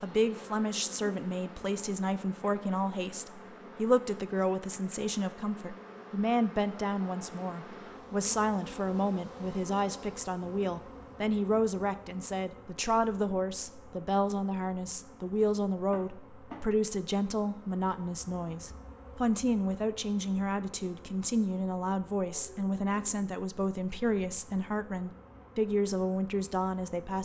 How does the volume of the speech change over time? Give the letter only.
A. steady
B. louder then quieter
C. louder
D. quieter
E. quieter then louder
A.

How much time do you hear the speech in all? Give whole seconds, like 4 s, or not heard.
27 s.